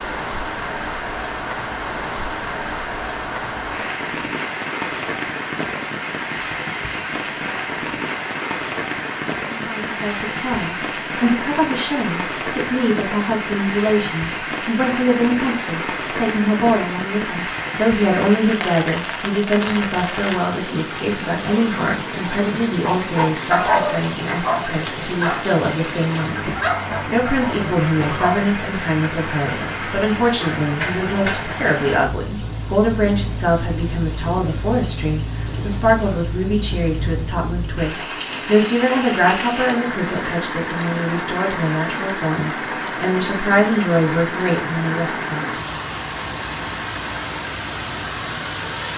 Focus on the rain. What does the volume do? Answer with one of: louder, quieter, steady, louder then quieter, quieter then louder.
steady.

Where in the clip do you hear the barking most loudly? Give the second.
24 s.